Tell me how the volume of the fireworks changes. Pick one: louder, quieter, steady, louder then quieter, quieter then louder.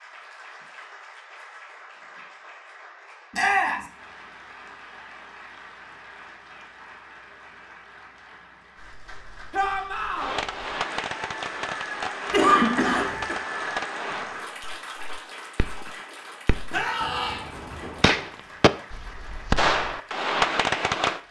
quieter then louder.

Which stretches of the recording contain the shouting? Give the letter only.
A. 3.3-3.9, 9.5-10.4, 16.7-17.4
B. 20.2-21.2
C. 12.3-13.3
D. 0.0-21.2
A.